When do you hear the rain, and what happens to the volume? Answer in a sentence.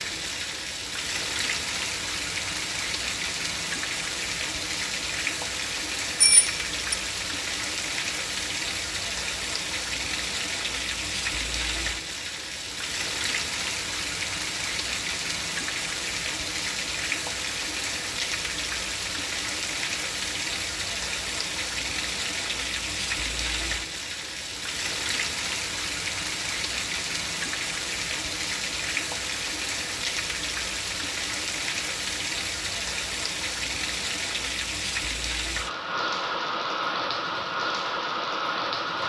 The rain can be heard from 0.0 to 39.0 s, at a steady volume.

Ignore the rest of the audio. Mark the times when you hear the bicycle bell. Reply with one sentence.
The bicycle bell can be heard from 6.2 to 7.0 s.